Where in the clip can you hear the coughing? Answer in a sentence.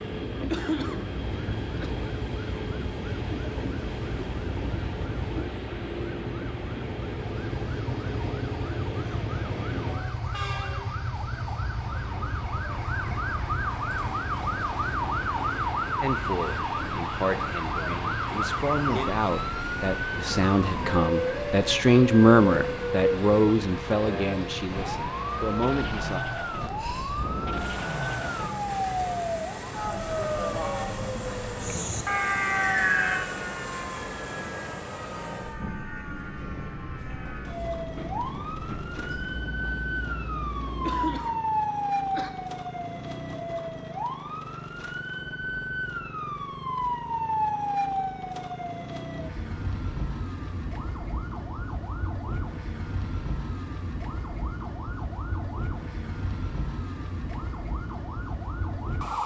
You can hear the coughing from 0.3 to 1.9 s and from 40.6 to 42.3 s.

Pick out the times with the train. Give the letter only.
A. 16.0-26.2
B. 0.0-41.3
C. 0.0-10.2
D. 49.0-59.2
B.